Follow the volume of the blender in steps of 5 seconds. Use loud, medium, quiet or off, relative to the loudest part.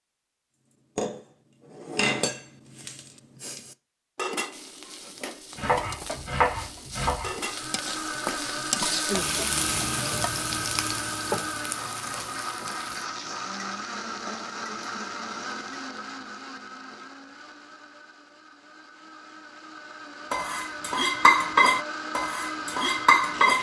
off, loud, loud, medium, loud.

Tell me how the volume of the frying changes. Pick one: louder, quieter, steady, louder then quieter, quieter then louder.
louder then quieter.